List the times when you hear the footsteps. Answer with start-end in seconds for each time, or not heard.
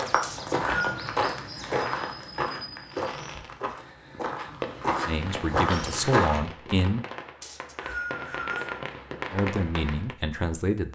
0.0-6.4.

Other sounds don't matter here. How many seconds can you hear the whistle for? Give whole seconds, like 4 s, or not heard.
2 s.